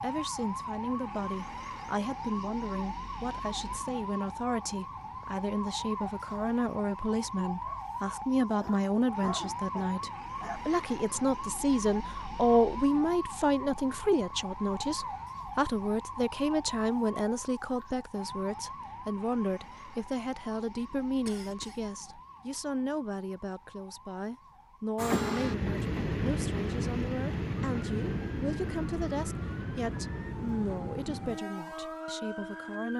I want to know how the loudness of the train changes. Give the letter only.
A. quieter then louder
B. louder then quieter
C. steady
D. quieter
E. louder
D.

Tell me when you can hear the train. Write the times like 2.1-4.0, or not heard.
24.9-32.9.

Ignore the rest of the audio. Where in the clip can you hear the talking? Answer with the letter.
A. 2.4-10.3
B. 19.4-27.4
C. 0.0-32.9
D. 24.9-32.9
C.